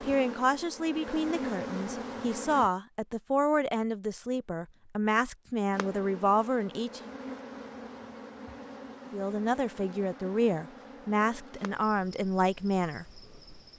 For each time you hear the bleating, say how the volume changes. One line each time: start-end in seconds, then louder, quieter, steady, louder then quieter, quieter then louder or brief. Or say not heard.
not heard.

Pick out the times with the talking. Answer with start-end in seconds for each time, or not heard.
0.0-7.1, 9.1-13.1.